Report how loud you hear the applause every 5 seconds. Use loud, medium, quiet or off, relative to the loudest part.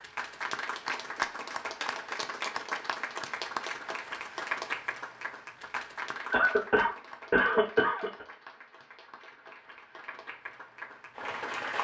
loud, medium, loud.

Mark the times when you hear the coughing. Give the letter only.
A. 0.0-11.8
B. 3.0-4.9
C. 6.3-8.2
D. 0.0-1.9
C.